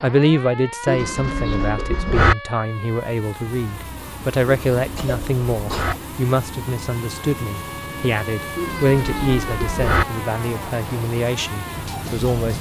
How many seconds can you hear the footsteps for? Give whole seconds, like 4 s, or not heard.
not heard.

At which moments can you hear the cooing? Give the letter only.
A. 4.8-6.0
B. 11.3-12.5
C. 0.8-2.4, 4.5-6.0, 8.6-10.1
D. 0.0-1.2
C.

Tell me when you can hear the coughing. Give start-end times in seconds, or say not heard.
4.8-6.0.